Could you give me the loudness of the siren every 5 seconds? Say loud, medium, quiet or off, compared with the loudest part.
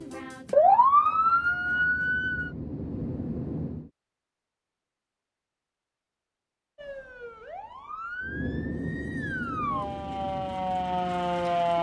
loud, quiet, medium.